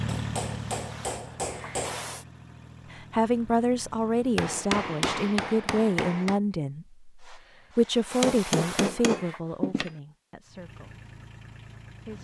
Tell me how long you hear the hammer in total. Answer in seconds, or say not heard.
6 s.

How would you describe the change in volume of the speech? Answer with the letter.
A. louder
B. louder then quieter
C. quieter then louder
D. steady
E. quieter
E.